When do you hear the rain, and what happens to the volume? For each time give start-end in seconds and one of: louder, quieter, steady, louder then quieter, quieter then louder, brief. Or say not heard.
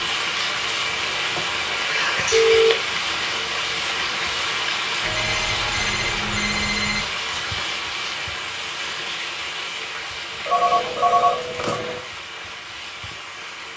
0.0-13.7 quieter.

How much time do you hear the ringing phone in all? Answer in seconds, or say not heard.
4 s.